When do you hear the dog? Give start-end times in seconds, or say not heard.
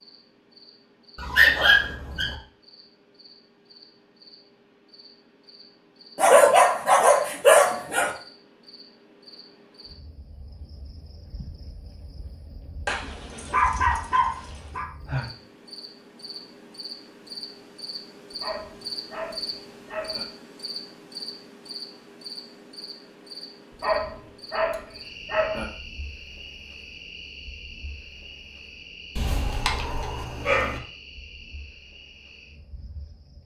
1.1-2.4, 6.2-8.1, 12.8-14.8, 18.4-20.2, 23.8-25.6, 29.1-30.8.